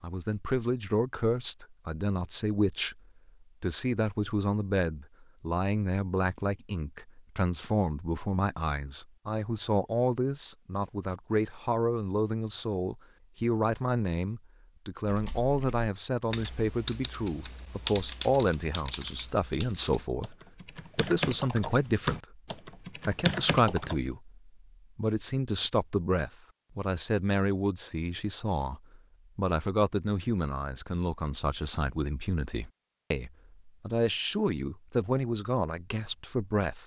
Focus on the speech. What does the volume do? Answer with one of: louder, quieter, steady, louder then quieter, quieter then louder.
steady.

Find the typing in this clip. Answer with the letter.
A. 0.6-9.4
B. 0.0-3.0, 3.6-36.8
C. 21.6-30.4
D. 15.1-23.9
D.